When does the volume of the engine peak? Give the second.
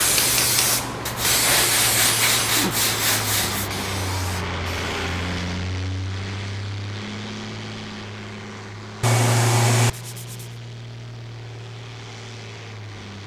5 s.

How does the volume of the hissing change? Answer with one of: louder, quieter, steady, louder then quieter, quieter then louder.
quieter.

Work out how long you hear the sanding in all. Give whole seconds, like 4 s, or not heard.
4 s.